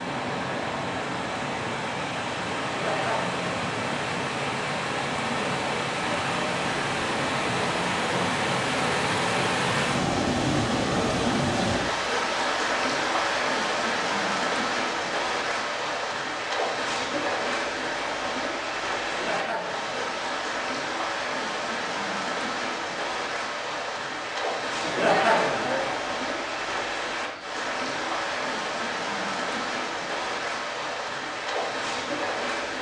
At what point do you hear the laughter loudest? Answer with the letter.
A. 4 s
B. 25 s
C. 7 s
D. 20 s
B.